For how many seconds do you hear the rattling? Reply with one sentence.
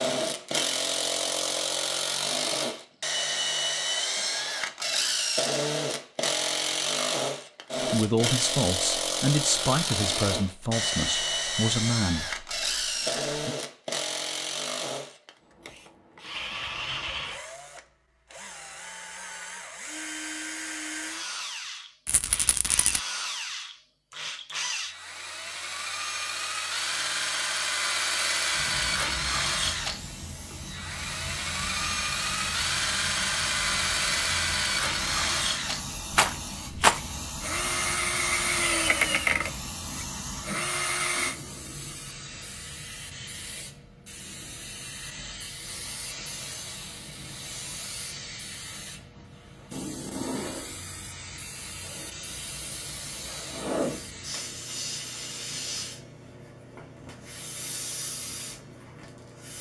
The rattling can be heard for 2 seconds in total.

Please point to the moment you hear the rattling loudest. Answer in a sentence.
The loudest moment of the rattling is at 37 seconds.